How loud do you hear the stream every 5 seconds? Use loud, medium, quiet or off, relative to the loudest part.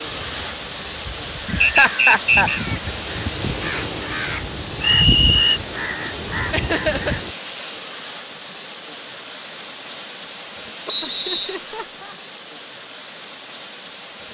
loud, loud, medium.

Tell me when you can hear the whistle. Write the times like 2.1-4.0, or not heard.
1.6-2.6, 4.8-5.6, 10.8-11.6.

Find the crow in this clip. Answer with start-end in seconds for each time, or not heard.
0.0-7.3.